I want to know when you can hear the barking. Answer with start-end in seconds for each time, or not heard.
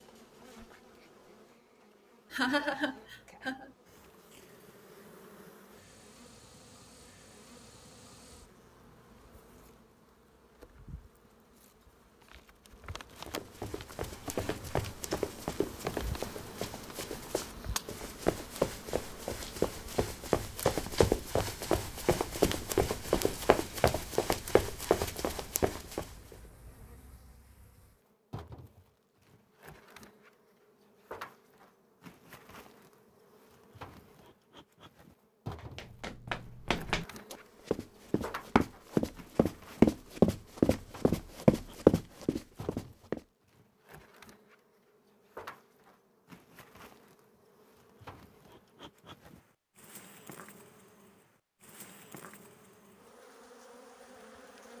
not heard.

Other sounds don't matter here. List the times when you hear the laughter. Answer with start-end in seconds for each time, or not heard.
2.3-3.7.